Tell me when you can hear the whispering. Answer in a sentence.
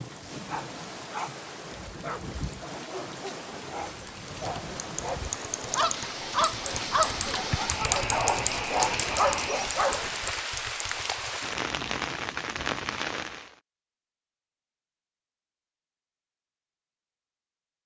The whispering can't be heard in this clip.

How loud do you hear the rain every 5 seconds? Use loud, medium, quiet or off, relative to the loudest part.
medium, loud, loud, off.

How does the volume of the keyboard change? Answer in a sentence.
The loudness of the keyboard goes up, then down.